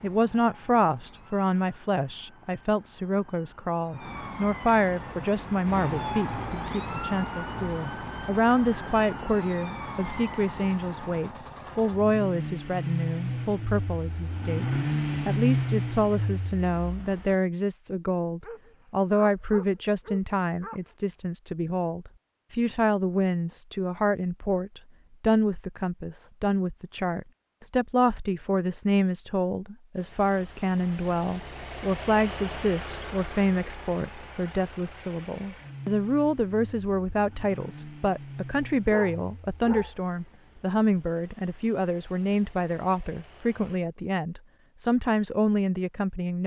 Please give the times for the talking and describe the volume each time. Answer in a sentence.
The talking can be heard from 0.0 to 14.7 s, at a steady volume; and from 15.2 to 46.4 s, at a steady volume.